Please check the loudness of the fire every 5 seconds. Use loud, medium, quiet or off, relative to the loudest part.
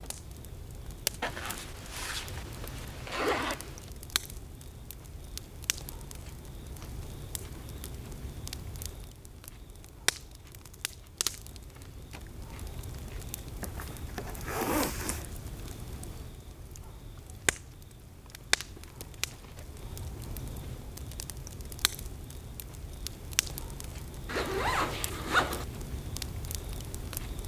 loud, medium, loud, loud, loud, loud.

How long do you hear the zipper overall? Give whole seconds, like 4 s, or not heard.
6 s.